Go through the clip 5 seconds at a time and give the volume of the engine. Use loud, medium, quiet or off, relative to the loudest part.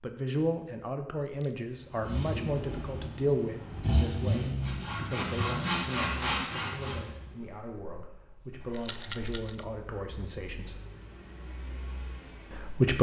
loud, medium, quiet.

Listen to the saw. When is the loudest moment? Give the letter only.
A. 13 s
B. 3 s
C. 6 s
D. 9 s
C.